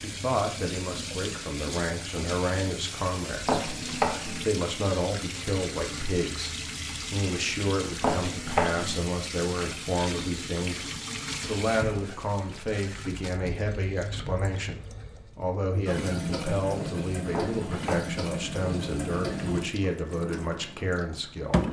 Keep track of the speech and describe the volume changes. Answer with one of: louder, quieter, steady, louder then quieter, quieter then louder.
steady.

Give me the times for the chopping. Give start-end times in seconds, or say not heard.
3.5-4.5, 8.0-9.0, 17.3-18.1.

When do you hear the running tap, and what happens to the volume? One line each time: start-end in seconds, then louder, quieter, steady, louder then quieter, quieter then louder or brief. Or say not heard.
0.0-21.6 steady.